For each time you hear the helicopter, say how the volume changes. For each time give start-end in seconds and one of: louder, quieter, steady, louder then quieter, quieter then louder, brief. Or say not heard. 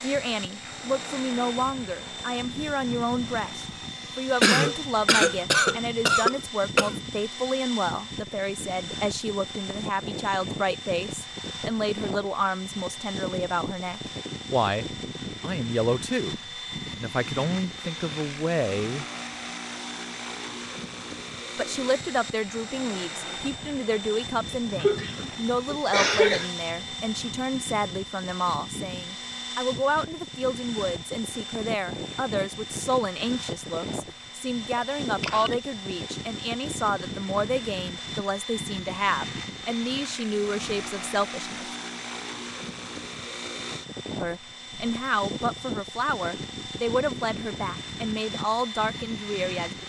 0.0-49.8 steady.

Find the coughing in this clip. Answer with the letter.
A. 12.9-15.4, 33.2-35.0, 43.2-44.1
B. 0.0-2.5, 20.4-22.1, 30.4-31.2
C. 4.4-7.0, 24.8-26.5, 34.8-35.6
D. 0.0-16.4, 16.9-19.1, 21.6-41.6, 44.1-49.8
C.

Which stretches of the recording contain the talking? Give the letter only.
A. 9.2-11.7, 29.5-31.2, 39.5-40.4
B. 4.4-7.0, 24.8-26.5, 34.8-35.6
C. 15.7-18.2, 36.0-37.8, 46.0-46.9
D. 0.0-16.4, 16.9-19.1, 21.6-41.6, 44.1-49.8
D.